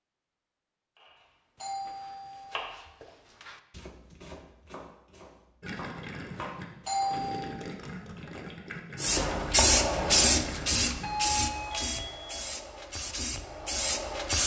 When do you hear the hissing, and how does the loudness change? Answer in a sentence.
The hissing can be heard from 8.9 to 14.4 s, getting quieter then louder.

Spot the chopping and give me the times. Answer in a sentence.
You can hear the chopping from 0.9 to 7.2 s.